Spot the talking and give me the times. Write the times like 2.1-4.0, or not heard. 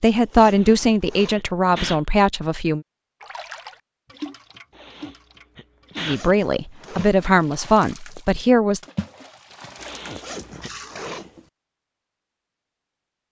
0.0-2.8, 6.0-8.8.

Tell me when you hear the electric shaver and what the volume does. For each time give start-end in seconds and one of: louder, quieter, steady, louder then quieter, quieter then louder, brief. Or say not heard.
not heard.